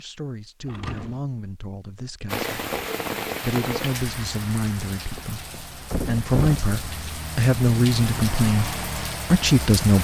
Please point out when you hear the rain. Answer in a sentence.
The rain can be heard from 2.2 to 9.9 s.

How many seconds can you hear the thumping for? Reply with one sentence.
You can hear the thumping for 2 seconds altogether.